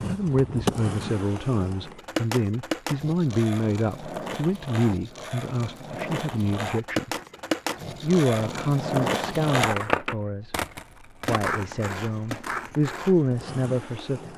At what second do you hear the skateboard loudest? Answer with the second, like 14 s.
9 s.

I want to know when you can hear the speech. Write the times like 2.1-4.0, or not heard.
0.1-7.1, 8.0-10.7, 11.2-14.3.